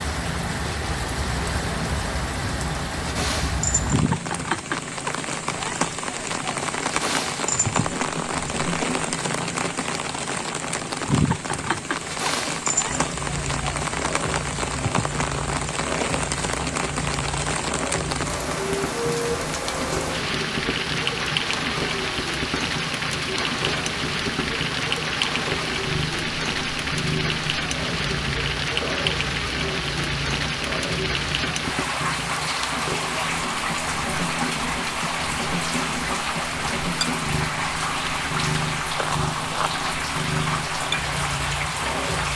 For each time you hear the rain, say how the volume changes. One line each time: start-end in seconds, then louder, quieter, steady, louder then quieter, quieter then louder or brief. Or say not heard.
0.0-42.3 steady.